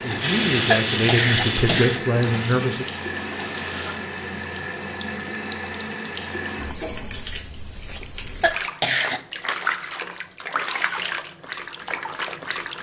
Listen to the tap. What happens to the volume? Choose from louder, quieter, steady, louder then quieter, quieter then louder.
steady.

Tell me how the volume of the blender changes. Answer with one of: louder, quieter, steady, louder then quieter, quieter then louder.
quieter.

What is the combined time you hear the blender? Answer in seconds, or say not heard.
4 s.